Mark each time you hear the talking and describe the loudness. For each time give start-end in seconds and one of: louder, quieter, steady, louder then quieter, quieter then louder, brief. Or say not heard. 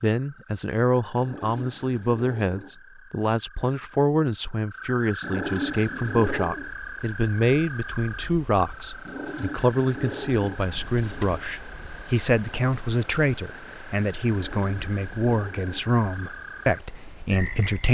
0.0-17.8 steady.